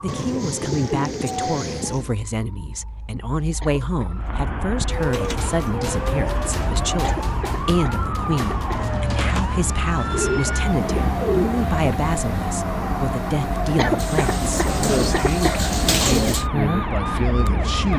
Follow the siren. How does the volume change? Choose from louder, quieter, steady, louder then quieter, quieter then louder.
louder.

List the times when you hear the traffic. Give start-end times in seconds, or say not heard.
4.2-17.9.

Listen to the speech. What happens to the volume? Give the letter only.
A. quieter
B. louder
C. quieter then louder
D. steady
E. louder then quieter
D.